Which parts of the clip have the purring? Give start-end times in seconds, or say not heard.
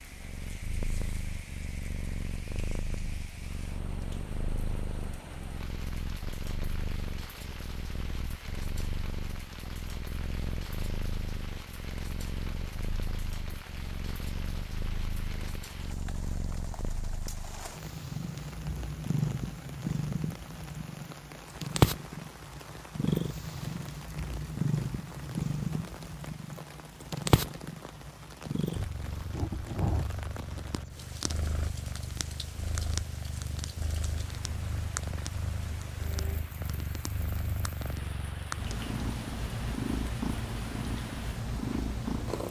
0.0-42.4.